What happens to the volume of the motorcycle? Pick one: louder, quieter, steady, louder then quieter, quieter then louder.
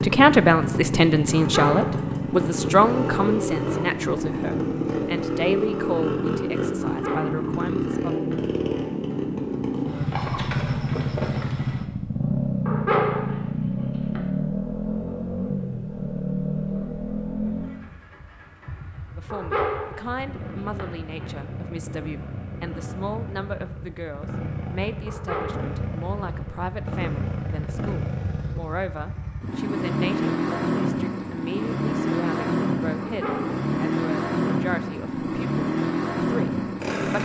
quieter then louder.